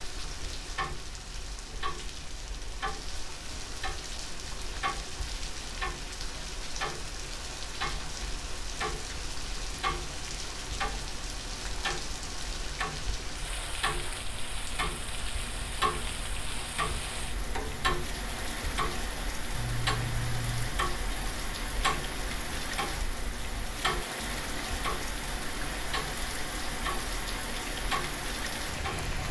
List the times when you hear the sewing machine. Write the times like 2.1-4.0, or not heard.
not heard.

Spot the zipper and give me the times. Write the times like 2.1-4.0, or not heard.
19.5-20.7.